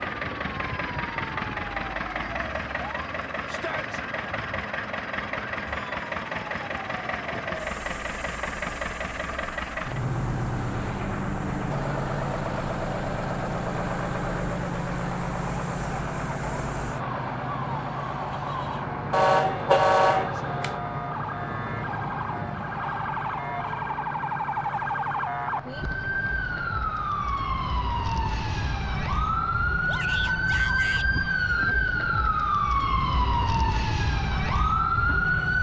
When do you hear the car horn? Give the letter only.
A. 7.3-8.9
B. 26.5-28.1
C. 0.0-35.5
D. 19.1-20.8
D.